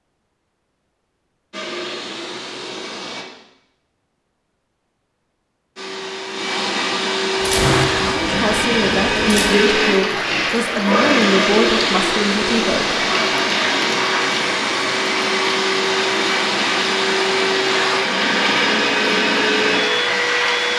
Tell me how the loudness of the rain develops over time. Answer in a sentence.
The volume of the rain stays about the same.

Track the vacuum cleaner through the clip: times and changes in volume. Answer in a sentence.
You can hear the vacuum cleaner briefly from 1.5 to 3.2 s; and from 5.8 to 20.7 s, at a steady volume.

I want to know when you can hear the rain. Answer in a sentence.
You can hear the rain from 7.3 to 20.7 s.